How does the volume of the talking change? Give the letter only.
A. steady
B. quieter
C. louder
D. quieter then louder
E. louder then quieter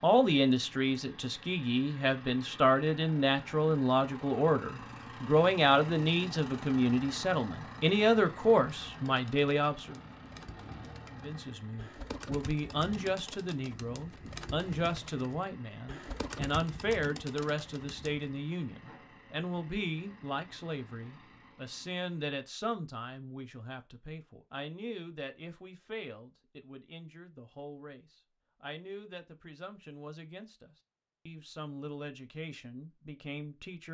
B.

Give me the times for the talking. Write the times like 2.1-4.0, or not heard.
0.0-9.9, 11.1-33.9.